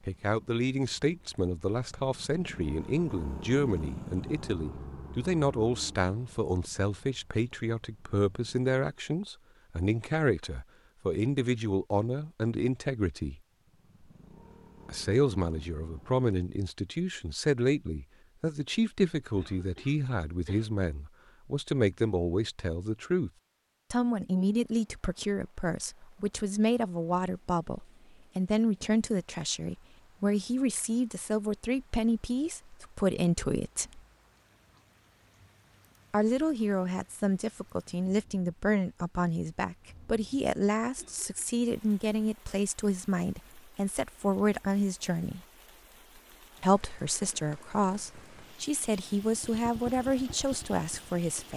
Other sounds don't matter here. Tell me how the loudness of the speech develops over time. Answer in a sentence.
The loudness of the speech stays about the same.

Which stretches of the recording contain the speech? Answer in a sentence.
You can hear the speech from 0.1 to 13.4 s, from 14.8 to 23.3 s, from 23.9 to 34.0 s, from 36.1 to 45.4 s and from 46.6 to 51.5 s.